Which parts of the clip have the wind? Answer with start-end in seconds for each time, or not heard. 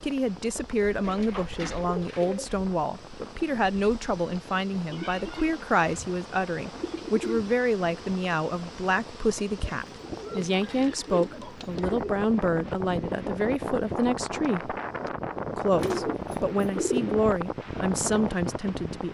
0.0-19.0.